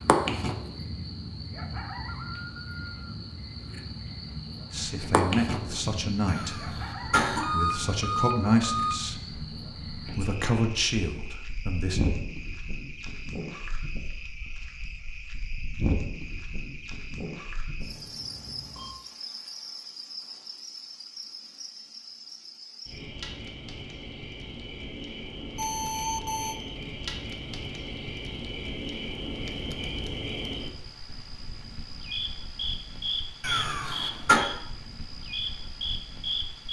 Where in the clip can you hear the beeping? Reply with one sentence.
You can hear the beeping from 7.4 to 9.0 s, from 17.8 to 18.9 s and from 25.6 to 26.6 s.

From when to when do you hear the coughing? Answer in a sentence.
You can hear the coughing from 6.2 to 7.5 s and from 33.4 to 34.4 s.